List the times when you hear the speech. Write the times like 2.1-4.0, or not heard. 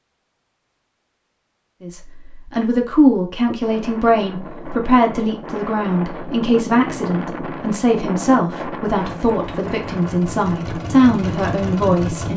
1.8-12.3.